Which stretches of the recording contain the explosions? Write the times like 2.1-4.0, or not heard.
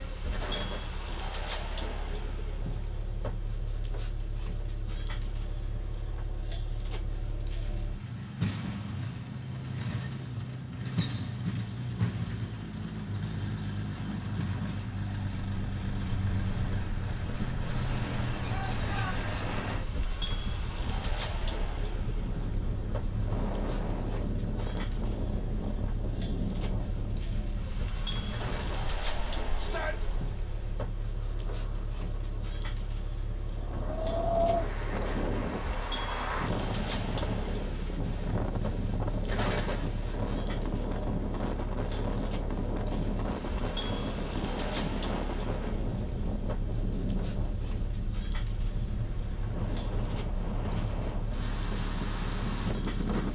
0.3-0.9, 28.3-28.9, 39.2-40.0.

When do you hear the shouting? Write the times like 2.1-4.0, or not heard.
18.5-19.1, 29.6-30.1.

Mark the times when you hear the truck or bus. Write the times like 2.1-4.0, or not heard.
0.0-53.2.